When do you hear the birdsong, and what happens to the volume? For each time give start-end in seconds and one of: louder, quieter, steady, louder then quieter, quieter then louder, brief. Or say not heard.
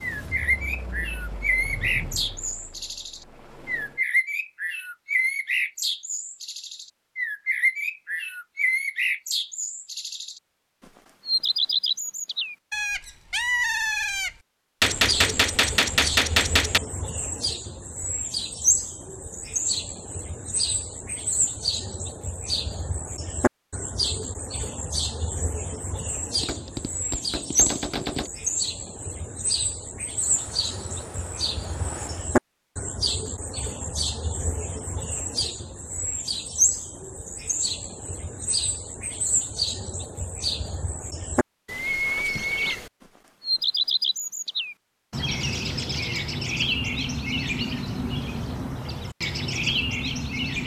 0.0-10.4 steady
11.2-50.6 steady.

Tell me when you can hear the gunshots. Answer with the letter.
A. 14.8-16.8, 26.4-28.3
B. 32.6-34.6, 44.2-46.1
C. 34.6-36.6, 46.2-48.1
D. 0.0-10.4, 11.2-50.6
A.